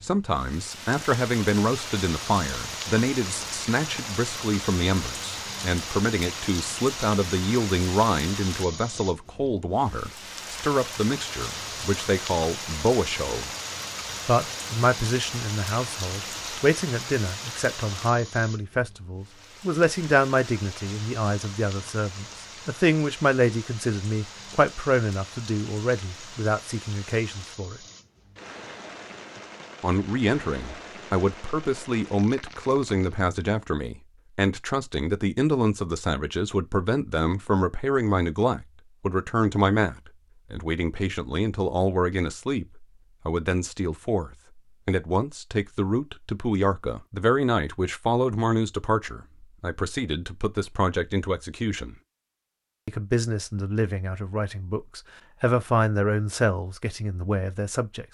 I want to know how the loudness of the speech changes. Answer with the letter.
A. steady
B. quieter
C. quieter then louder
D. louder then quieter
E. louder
A.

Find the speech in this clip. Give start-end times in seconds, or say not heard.
0.0-13.5, 14.2-27.8, 29.8-52.0, 52.9-58.0.